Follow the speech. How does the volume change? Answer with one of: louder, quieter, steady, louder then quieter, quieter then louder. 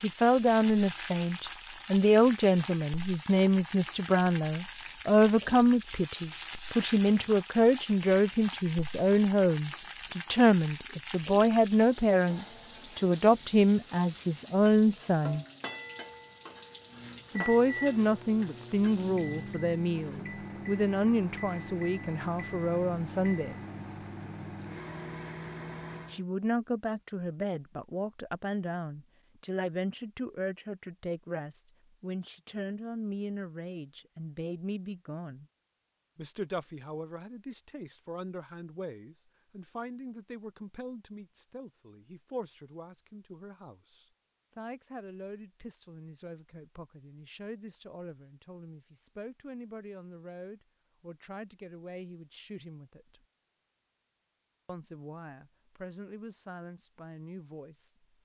quieter.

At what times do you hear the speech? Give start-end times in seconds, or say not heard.
0.0-15.4, 17.4-23.6, 26.1-35.5, 36.1-53.2, 54.6-58.0.